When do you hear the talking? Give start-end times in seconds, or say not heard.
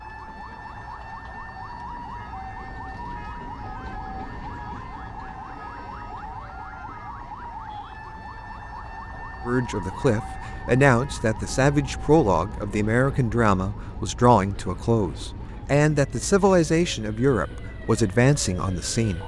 9.4-19.2.